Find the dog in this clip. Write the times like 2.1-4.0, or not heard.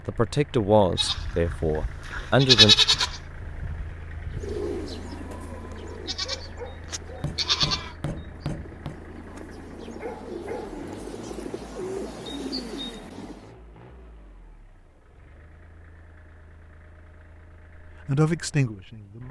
not heard.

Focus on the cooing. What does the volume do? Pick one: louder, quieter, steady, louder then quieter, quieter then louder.
quieter then louder.